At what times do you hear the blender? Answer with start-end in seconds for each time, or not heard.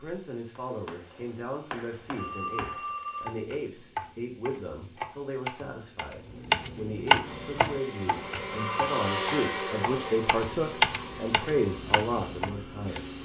7.2-13.2.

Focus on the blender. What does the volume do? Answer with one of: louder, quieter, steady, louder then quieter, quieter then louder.
louder then quieter.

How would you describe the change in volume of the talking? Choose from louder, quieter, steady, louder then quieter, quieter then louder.
louder.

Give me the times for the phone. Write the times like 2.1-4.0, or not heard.
2.1-3.4, 8.6-9.2.